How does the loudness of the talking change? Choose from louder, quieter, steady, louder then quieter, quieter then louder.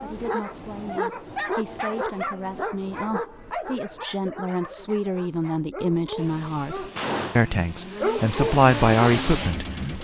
louder.